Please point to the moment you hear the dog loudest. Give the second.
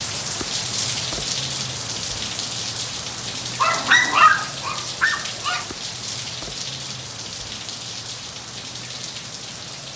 4 s.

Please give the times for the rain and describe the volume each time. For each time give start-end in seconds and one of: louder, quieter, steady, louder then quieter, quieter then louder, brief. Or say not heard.
0.0-9.9 quieter.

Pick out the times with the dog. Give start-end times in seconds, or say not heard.
3.6-5.7.